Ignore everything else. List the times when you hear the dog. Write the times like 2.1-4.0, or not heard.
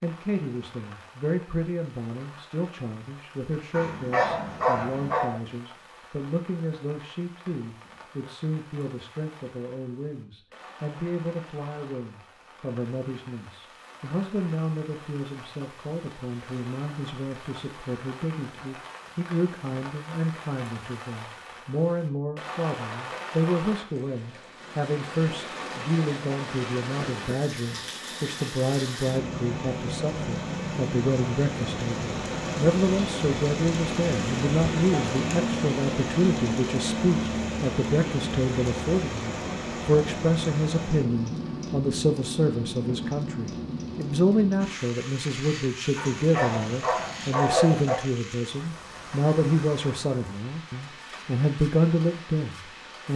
3.7-5.4, 46.0-48.0.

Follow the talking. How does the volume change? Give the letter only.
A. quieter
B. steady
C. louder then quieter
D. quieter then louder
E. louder
E.